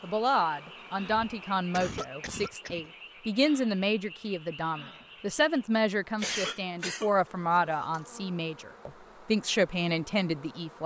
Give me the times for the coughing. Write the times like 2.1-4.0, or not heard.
1.1-2.9, 6.2-8.0.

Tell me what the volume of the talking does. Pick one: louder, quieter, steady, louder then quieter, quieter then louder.
steady.